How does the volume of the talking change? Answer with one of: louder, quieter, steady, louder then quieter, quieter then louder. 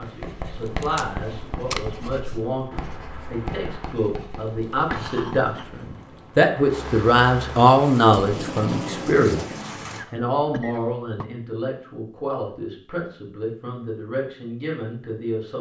louder then quieter.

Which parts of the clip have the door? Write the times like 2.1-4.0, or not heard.
not heard.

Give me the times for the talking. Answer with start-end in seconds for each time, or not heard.
0.0-15.5.